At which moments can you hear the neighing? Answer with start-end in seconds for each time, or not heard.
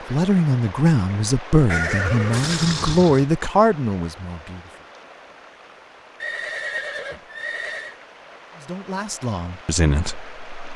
1.6-3.2, 6.2-8.0.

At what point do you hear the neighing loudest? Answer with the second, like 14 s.
2 s.